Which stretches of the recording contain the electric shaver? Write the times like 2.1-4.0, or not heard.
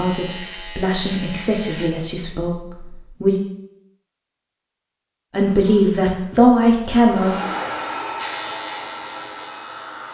0.0-1.9, 8.2-10.0.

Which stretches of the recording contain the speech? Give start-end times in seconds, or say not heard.
0.0-3.4, 5.3-7.3.